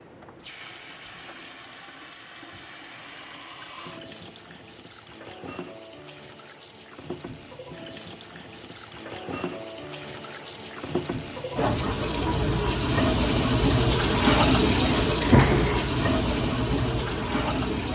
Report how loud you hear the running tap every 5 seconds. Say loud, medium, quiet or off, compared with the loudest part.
quiet, quiet, loud, loud.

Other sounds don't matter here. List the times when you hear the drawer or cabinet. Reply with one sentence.
The drawer or cabinet can be heard from 15.2 to 15.9 s.